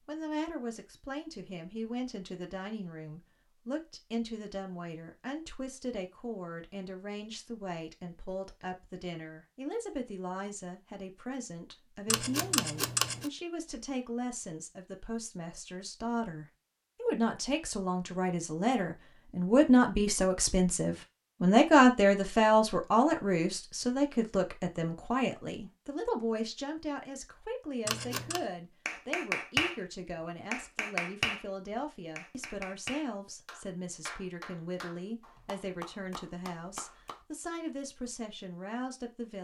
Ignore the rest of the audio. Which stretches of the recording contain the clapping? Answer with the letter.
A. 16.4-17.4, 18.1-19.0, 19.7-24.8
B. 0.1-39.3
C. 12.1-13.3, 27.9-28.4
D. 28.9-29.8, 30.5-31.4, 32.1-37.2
D.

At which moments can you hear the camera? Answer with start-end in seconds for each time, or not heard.
12.1-13.3, 27.9-28.4.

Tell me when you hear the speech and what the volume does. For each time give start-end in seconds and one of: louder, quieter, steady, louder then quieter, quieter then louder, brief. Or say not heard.
0.1-39.3 louder then quieter.